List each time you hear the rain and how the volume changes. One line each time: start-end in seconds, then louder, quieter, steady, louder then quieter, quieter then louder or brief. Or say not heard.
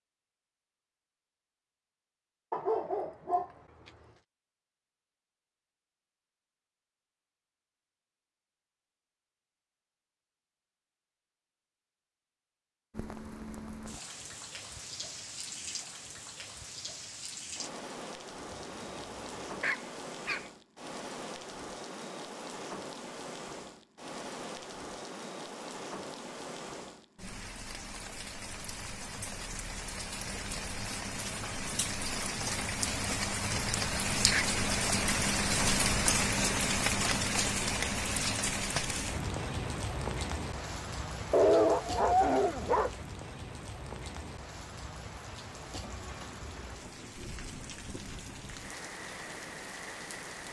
12.9-50.4 louder then quieter.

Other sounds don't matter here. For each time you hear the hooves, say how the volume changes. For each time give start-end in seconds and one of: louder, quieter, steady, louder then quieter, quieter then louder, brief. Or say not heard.
not heard.